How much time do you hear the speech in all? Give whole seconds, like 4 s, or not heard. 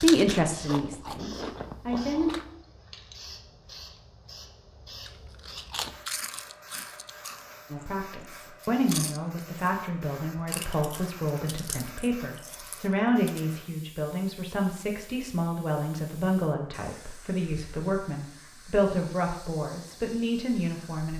16 s.